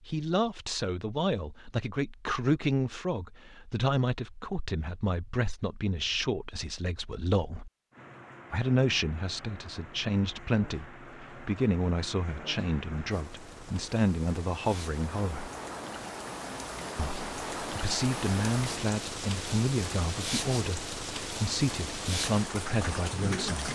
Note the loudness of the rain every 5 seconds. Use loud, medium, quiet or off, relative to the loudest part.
off, quiet, medium, loud, loud.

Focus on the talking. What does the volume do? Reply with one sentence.
The loudness of the talking stays about the same.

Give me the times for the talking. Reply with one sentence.
You can hear the talking from 0.1 to 7.7 s, from 8.5 to 15.5 s and from 16.9 to 23.6 s.